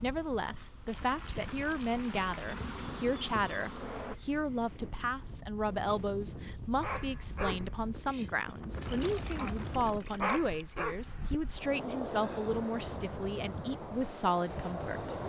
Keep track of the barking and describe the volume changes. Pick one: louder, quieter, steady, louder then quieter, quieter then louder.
quieter then louder.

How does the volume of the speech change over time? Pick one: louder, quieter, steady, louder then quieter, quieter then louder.
steady.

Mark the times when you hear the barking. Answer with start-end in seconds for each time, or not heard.
6.8-11.0.